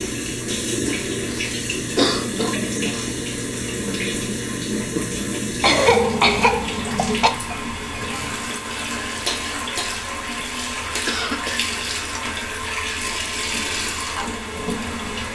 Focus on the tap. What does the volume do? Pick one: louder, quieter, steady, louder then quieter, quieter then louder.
steady.